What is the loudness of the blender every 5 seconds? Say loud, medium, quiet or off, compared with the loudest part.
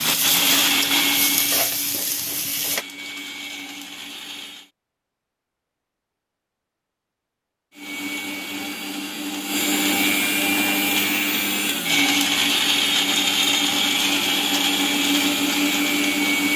medium, medium, loud, loud.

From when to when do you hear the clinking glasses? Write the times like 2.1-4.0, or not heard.
not heard.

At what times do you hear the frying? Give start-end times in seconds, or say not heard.
0.0-2.9.